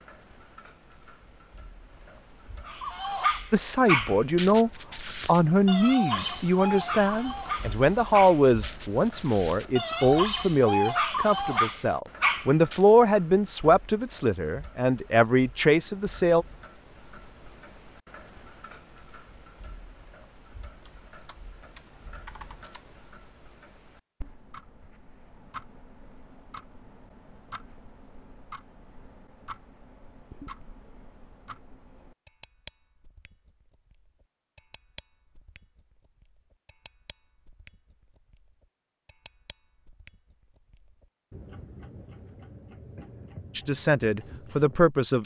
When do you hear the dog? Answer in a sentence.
You can hear the dog from 2.6 to 12.8 s.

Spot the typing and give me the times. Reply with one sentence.
The typing can be heard from 20.9 to 22.8 s.